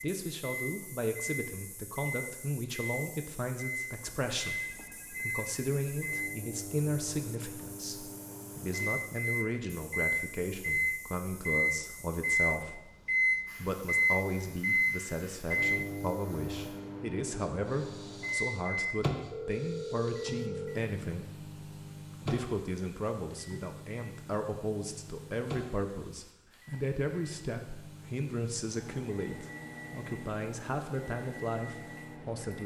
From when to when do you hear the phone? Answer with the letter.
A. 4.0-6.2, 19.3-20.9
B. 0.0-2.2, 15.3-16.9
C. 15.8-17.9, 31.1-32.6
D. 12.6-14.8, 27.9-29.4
A.